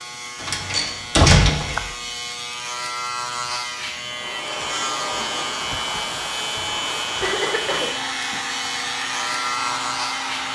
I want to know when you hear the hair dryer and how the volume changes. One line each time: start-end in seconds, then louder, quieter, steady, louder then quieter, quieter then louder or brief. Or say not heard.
4.0-10.5 steady.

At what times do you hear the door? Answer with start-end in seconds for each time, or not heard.
0.4-1.9.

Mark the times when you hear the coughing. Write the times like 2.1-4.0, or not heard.
1.2-1.8, 7.2-8.5.